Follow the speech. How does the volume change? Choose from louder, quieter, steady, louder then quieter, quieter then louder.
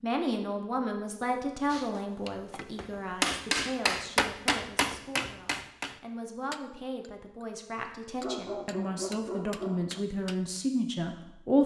quieter then louder.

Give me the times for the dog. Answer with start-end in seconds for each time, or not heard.
8.2-10.1.